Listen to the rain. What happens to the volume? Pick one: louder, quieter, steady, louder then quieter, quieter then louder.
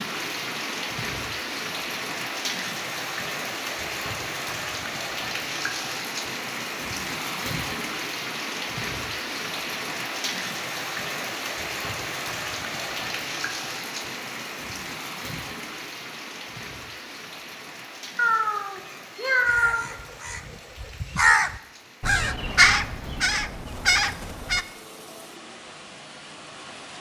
quieter.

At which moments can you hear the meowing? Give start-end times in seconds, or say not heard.
18.1-19.9.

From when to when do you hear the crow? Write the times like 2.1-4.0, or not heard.
19.4-24.6.